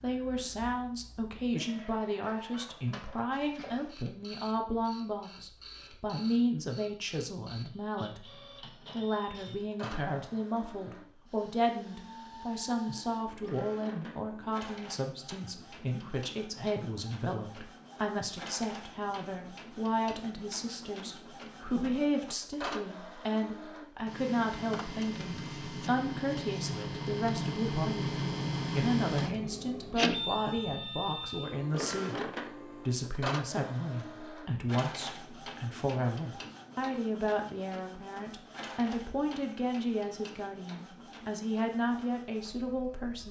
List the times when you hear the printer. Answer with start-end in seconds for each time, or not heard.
0.0-43.2.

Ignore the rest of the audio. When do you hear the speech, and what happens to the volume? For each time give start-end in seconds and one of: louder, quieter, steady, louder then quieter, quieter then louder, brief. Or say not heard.
0.0-28.1 steady
28.8-43.2 steady.